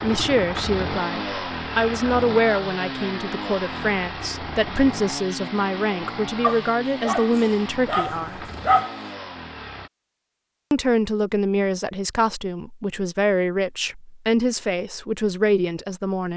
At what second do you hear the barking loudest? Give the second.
9 s.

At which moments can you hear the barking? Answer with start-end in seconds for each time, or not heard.
6.4-9.0.